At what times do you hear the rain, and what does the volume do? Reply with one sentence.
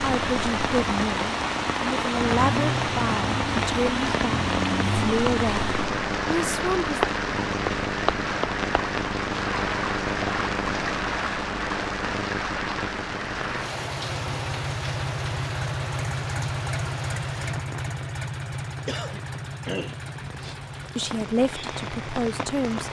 You can hear the rain from 0.0 to 22.8 s, getting quieter.